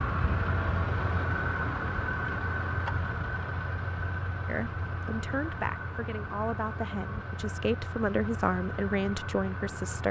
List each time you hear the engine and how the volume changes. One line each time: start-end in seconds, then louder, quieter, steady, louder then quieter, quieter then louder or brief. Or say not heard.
0.0-10.0 quieter.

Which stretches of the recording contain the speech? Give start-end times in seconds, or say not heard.
4.5-10.0.